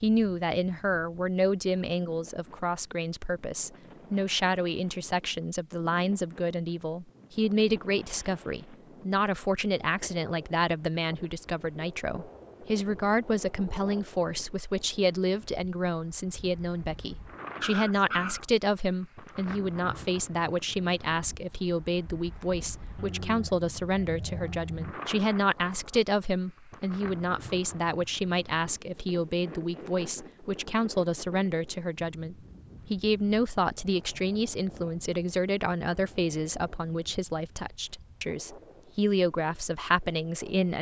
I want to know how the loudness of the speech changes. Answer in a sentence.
The loudness of the speech stays about the same.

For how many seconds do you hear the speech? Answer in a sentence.
You can hear the speech for 41 seconds altogether.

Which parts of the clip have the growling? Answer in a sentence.
The growling can be heard from 17.6 to 18.4 s and from 22.9 to 24.9 s.